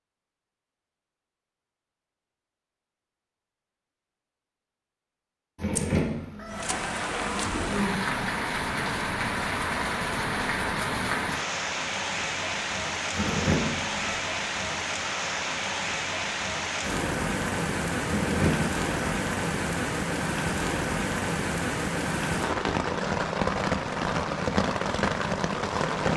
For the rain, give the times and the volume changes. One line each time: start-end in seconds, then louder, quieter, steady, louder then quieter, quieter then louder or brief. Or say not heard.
6.5-26.1 steady.